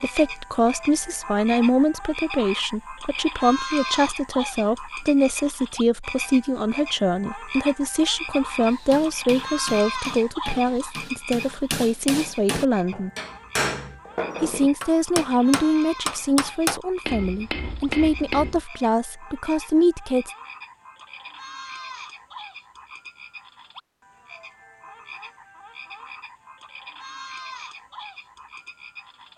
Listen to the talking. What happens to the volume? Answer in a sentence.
The loudness of the talking stays about the same.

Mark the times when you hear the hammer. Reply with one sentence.
The hammer can be heard from 8.6 to 18.6 s.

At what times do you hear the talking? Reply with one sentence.
The talking can be heard from 0.0 to 13.1 s and from 14.4 to 20.3 s.